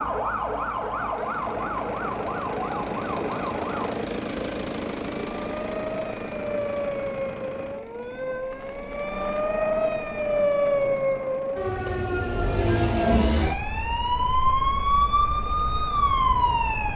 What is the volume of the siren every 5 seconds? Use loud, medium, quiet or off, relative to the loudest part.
medium, medium, loud, loud.